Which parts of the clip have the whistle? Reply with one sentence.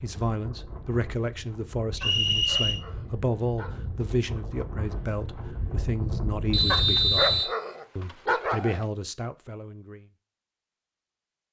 The whistle can be heard from 1.9 to 2.8 s and from 6.5 to 7.5 s.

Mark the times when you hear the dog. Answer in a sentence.
You can hear the dog from 2.0 to 3.8 s and from 6.7 to 8.8 s.